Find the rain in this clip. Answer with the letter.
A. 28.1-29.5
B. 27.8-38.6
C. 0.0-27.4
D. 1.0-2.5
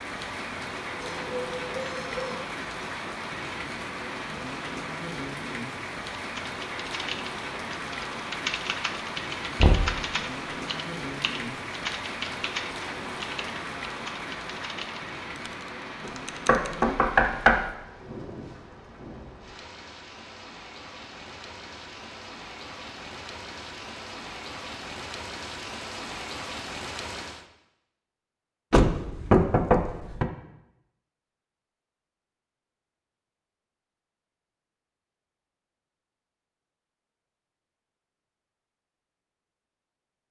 C.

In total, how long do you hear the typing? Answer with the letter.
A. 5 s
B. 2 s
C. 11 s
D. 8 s
C.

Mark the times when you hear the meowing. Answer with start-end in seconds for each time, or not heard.
1.0-2.5.